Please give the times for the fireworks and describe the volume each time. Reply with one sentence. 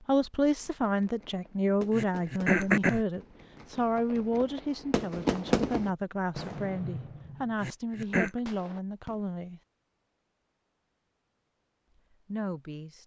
The fireworks can be heard from 0.6 to 9.2 s, getting louder then quieter.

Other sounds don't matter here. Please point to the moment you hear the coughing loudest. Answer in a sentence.
The loudest moment of the coughing is at 3 seconds.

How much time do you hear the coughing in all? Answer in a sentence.
The coughing can be heard for 2 seconds in total.